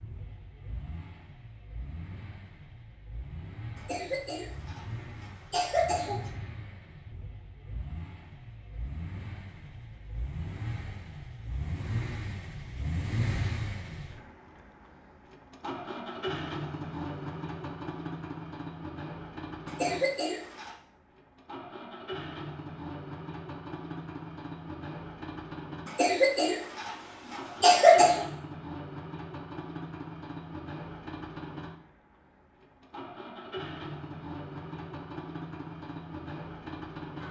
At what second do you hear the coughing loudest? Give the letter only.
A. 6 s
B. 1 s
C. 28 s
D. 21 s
C.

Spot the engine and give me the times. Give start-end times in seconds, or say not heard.
0.0-37.2.